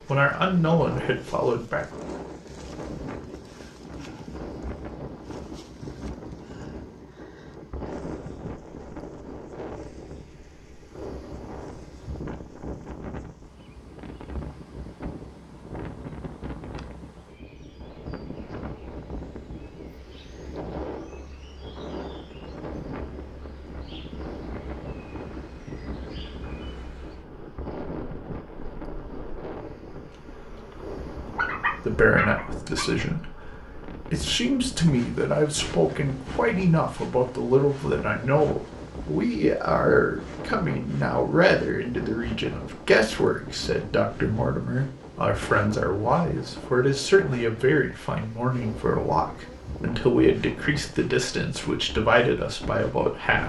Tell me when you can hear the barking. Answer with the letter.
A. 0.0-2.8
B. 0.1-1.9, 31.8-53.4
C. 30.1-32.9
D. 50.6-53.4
C.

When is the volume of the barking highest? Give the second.
32 s.